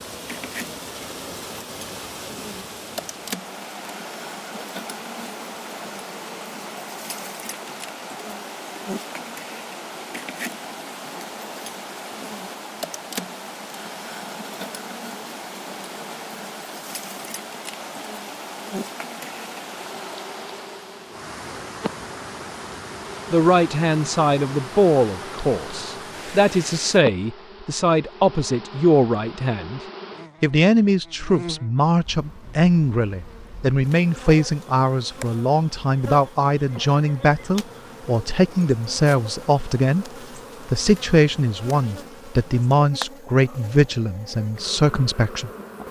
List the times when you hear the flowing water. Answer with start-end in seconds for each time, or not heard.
0.0-27.0.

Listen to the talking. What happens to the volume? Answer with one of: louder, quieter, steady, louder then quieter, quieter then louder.
steady.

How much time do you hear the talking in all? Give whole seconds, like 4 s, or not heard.
21 s.